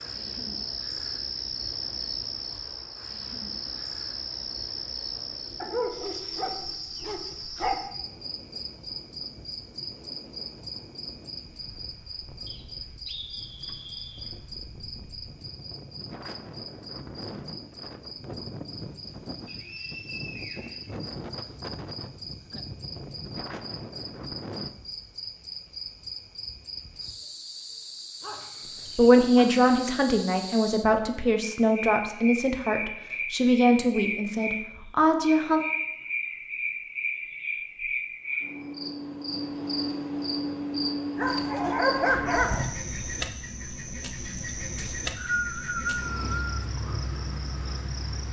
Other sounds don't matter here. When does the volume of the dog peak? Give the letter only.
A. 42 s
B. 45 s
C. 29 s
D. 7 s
A.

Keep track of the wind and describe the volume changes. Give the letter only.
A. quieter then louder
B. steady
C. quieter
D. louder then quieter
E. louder
E.